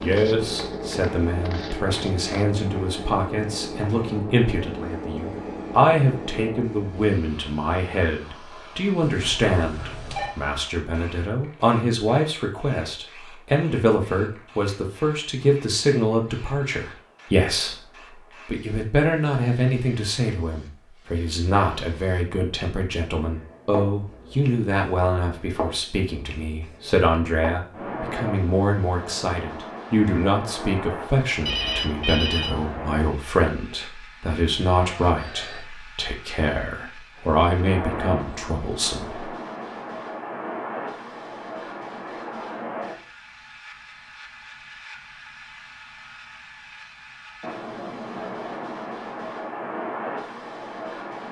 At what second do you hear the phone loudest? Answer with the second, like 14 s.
32 s.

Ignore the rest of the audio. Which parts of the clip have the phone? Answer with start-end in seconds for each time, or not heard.
9.0-10.3, 31.4-32.5, 34.7-35.6.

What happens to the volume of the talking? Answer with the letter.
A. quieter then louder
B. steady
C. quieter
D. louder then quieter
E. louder
B.